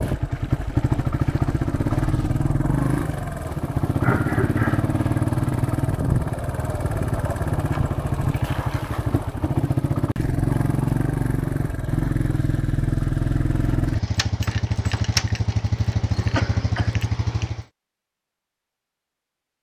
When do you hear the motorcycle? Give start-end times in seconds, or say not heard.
0.0-17.6.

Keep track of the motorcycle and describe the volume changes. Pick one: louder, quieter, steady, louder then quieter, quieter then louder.
steady.